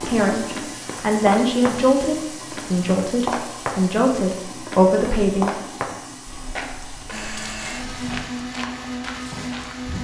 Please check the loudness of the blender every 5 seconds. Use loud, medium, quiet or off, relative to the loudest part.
off, loud.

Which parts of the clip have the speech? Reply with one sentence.
The speech can be heard from 0.0 to 5.8 s.